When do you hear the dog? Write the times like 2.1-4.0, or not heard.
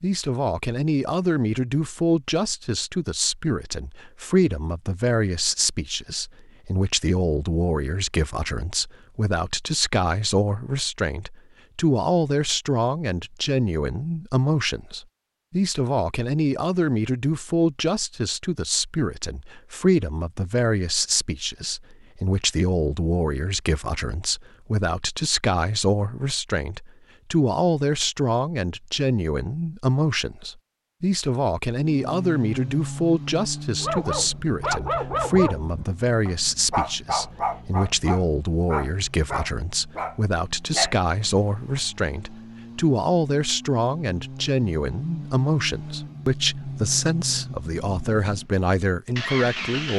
33.8-41.8.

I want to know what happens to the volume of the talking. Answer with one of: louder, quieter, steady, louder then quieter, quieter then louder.
steady.